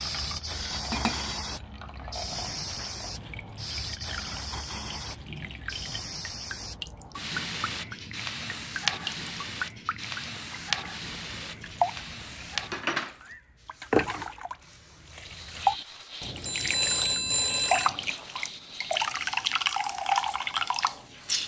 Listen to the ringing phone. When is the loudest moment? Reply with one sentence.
The loudest moment of the ringing phone is at 17 seconds.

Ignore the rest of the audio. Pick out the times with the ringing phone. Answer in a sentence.
You can hear the ringing phone from 0.5 to 1.4 s and from 16.4 to 17.9 s.